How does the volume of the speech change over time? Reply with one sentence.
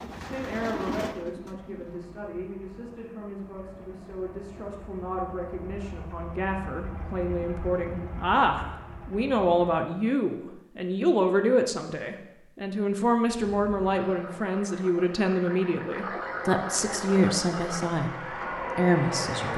The loudness of the speech goes up.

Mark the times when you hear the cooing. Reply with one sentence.
The cooing can be heard from 0.0 to 2.0 s.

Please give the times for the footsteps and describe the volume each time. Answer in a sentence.
The footsteps can't be heard in this clip.